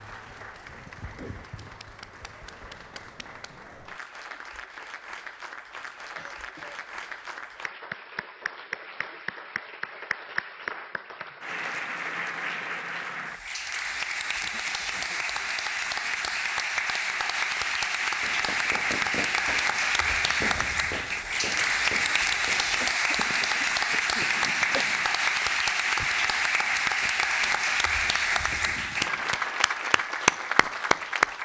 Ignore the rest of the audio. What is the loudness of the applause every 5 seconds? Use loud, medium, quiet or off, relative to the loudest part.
quiet, quiet, medium, loud, loud, loud, loud.